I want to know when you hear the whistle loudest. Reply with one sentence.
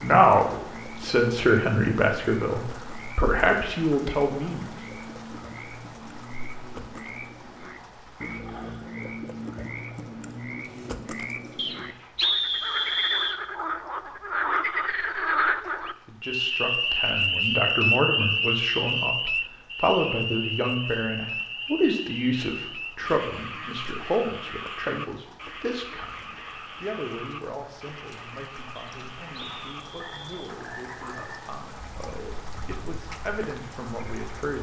The loudest moment of the whistle is at 12 seconds.